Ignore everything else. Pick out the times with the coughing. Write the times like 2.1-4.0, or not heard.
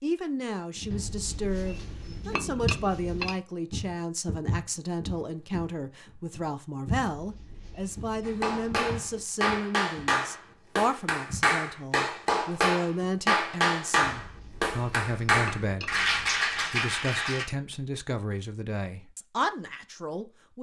not heard.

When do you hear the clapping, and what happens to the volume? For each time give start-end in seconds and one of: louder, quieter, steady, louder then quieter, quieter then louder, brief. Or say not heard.
8.2-17.4 steady.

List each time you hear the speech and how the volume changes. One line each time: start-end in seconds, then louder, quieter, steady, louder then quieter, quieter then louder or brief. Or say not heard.
0.0-20.5 steady.